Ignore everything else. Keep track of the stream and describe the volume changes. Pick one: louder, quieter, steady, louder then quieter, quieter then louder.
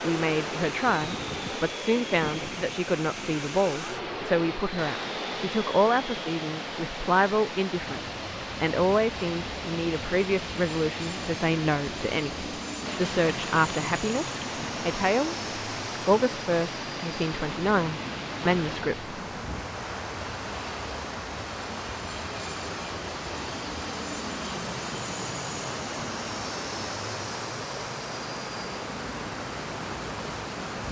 steady.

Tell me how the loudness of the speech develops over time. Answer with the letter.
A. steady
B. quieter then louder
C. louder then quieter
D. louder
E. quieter
A.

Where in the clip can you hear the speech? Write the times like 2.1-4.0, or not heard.
0.0-15.3, 16.1-19.1.